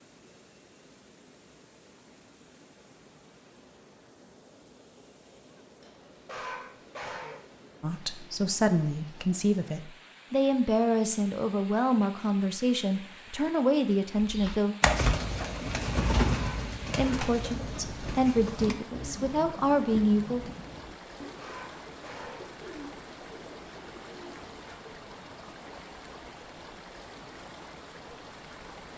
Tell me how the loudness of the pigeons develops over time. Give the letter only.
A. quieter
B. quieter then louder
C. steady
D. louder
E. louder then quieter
A.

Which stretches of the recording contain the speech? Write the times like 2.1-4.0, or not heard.
7.8-14.8, 16.9-20.5.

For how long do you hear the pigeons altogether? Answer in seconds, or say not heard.
11 s.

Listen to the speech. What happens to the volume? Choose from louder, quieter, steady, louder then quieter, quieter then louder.
steady.